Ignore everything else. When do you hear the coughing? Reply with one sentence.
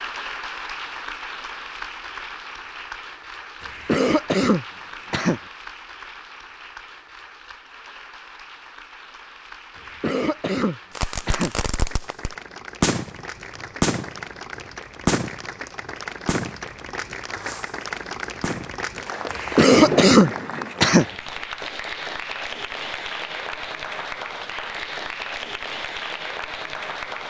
You can hear the coughing from 3.6 to 5.4 s, from 9.8 to 11.6 s and from 19.3 to 21.1 s.